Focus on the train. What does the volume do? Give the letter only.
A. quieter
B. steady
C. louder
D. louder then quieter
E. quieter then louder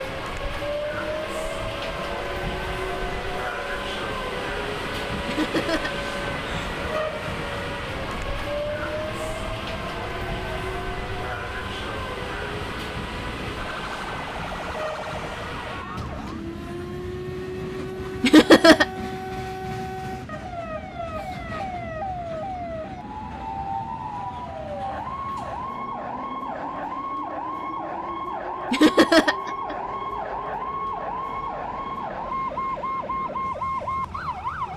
A.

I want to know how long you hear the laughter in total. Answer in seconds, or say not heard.
3 s.